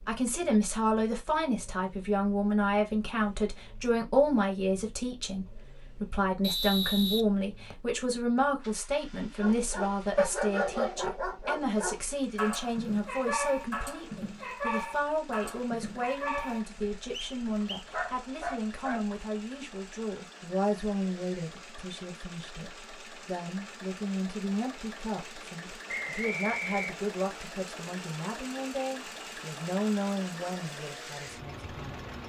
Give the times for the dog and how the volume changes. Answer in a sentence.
The dog can be heard from 9.4 to 19.1 s, getting quieter.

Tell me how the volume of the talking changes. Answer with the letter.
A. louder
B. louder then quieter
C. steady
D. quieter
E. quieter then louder
D.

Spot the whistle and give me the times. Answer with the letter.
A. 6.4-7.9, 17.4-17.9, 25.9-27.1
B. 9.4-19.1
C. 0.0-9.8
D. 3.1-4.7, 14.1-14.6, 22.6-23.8
A.